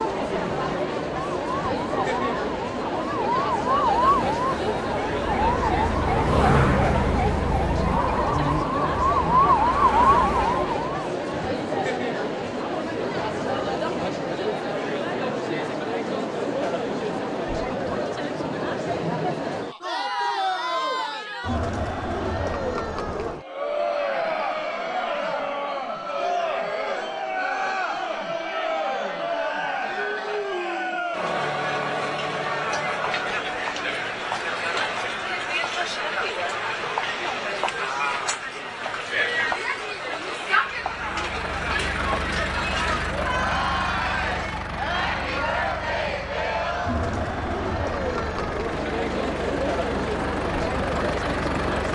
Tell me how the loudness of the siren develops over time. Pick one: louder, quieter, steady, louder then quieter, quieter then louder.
louder.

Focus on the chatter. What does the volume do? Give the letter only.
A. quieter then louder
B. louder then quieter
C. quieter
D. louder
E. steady
E.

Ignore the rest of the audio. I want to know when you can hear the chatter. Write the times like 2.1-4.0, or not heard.
0.0-51.9.